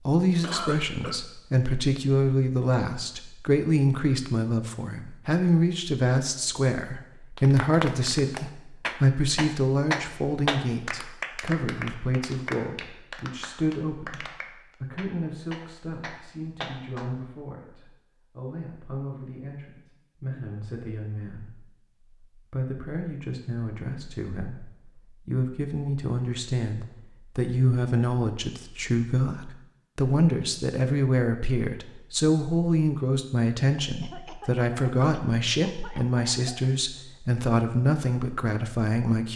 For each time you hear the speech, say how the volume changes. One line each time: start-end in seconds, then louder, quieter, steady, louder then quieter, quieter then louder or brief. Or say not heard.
0.0-39.3 quieter then louder.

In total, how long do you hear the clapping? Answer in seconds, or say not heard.
10 s.